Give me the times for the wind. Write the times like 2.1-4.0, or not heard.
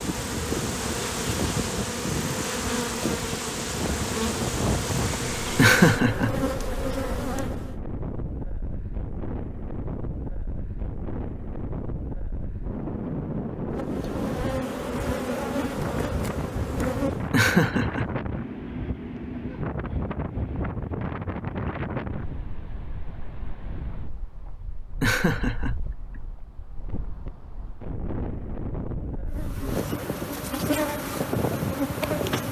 0.0-32.4.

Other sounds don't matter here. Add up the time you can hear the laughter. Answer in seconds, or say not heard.
3 s.